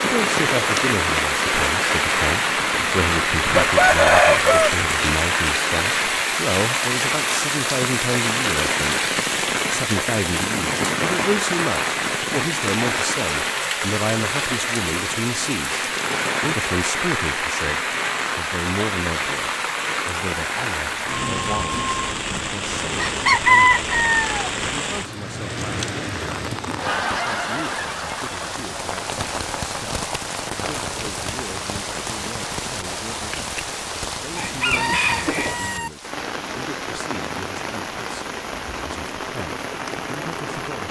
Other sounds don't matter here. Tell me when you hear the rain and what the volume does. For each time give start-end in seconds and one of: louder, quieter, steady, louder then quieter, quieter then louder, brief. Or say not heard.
0.0-40.8 quieter.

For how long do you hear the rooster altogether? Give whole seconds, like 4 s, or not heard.
4 s.